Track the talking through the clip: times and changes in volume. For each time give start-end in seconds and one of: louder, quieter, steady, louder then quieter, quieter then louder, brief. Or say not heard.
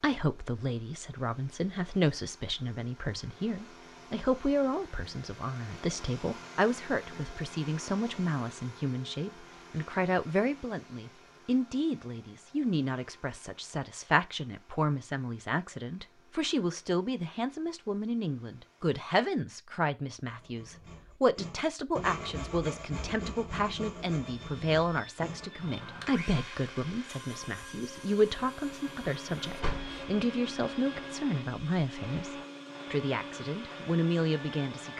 0.0-34.9 steady.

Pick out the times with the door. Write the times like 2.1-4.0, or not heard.
29.5-30.1.